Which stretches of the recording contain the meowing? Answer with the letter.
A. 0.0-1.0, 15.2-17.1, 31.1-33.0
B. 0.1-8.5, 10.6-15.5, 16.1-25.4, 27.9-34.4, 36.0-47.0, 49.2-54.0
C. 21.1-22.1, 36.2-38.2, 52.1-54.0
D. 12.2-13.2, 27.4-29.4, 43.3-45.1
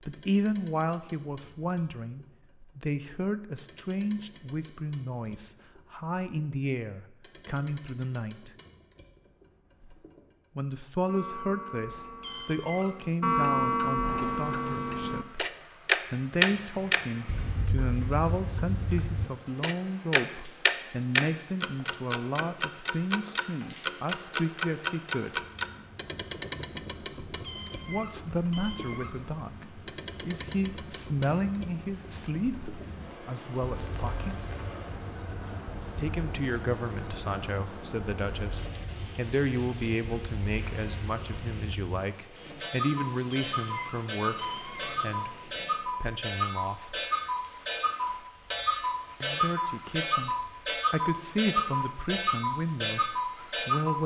D.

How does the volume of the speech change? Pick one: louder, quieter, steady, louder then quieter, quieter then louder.
steady.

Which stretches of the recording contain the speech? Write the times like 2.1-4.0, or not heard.
0.1-8.5, 10.6-15.5, 16.1-25.4, 27.9-34.4, 36.0-47.0, 49.2-54.0.